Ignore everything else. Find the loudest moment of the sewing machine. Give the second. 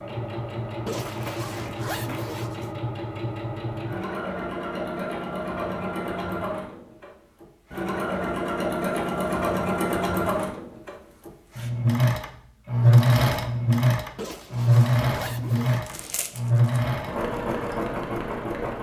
13 s.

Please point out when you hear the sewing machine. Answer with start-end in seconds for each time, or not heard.
0.0-18.7.